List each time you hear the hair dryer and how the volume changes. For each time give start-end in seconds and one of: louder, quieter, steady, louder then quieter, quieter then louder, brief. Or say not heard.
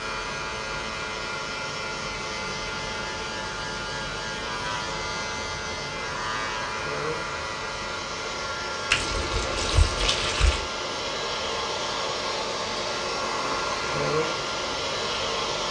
0.0-15.6 louder.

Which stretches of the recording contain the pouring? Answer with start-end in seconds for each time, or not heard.
8.9-10.6.